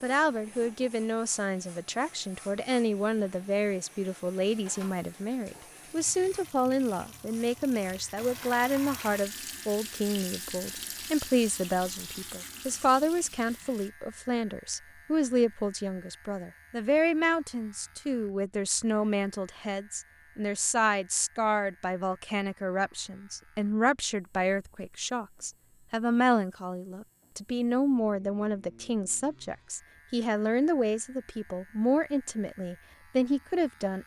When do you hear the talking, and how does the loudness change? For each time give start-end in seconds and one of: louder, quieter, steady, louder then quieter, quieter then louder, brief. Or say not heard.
0.0-34.0 steady.